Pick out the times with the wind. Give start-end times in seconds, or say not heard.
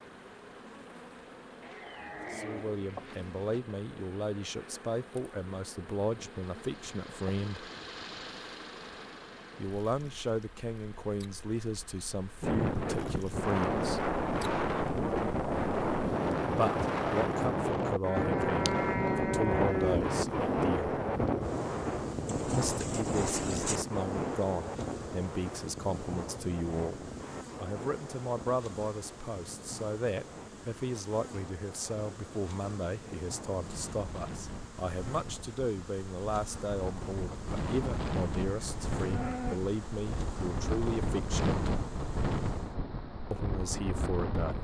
12.4-44.6.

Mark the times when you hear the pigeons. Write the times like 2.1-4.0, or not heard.
22.2-23.8.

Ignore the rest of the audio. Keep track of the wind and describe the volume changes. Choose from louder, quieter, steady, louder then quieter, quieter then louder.
quieter then louder.